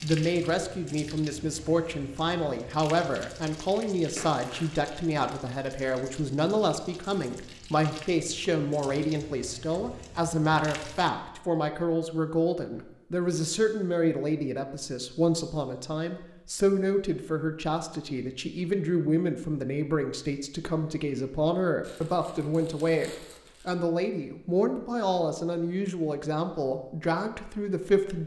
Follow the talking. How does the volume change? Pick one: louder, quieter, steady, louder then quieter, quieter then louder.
steady.